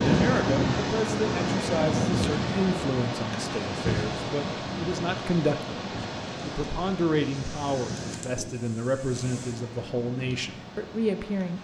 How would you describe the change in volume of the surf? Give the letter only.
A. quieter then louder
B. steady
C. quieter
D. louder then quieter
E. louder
C.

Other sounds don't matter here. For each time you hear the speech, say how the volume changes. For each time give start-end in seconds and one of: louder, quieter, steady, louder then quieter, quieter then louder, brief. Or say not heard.
0.0-11.5 steady.